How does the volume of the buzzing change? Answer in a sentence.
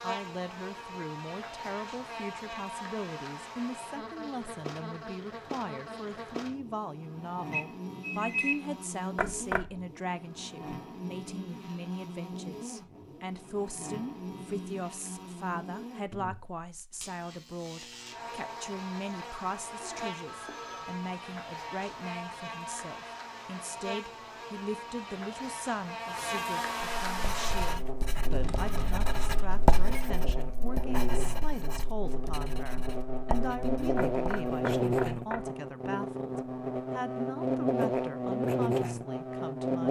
The volume of the buzzing goes up.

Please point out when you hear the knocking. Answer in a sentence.
The knocking can be heard from 9.2 to 9.8 s and from 34.0 to 35.5 s.